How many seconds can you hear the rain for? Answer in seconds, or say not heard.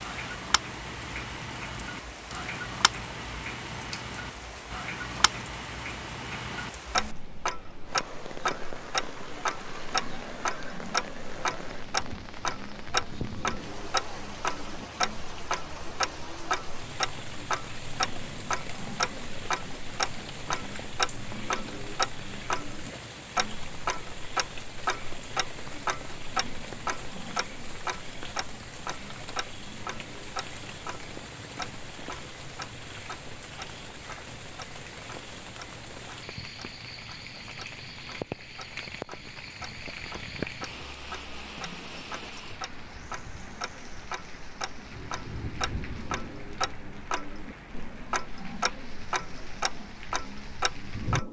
51 s.